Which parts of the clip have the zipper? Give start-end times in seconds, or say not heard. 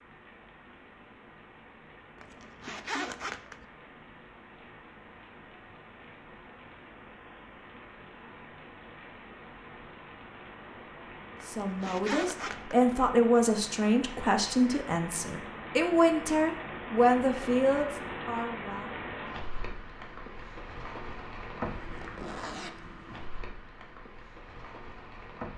2.1-3.6, 11.3-12.8, 21.6-23.3.